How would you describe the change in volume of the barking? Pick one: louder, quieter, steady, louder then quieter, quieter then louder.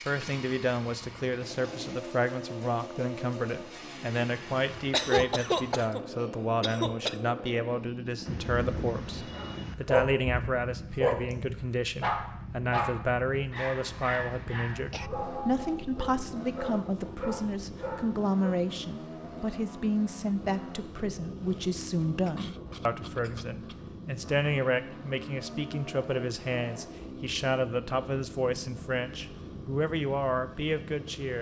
quieter.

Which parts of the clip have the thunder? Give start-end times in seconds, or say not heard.
8.2-9.8.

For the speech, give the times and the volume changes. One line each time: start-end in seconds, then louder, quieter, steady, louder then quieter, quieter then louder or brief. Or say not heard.
0.1-31.3 steady.